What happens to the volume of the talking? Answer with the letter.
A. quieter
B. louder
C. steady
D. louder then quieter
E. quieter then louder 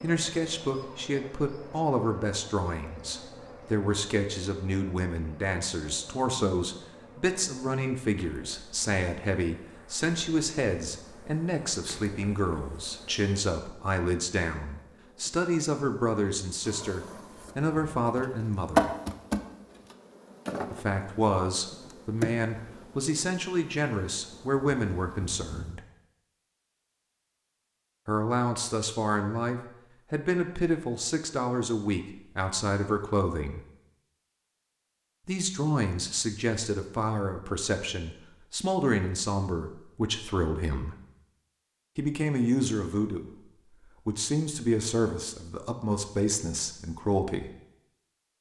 C.